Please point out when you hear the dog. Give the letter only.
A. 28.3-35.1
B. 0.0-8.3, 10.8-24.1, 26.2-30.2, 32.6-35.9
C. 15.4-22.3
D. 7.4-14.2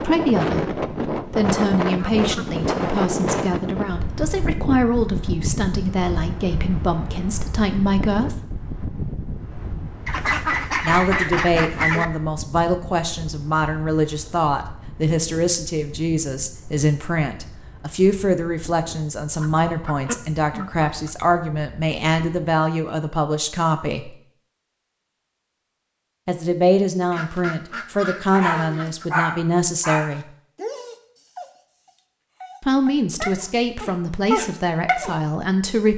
A.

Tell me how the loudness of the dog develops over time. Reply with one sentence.
The volume of the dog goes down, then up.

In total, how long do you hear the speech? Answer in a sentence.
You can hear the speech for 29 seconds altogether.